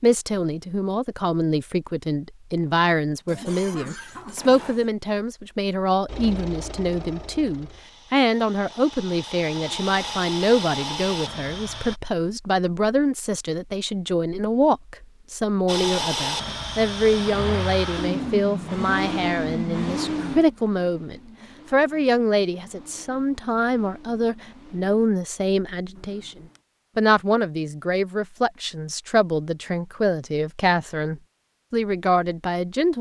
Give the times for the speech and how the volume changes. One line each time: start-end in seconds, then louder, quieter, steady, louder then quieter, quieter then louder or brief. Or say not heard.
0.0-32.9 steady.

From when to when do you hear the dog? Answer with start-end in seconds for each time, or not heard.
not heard.